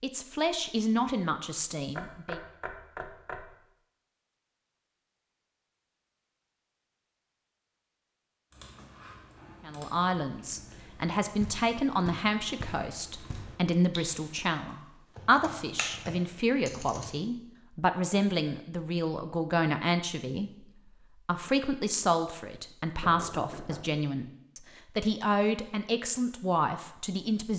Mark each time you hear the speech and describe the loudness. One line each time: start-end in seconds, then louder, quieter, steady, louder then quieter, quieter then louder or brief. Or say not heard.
0.0-2.4 brief
9.7-27.5 steady.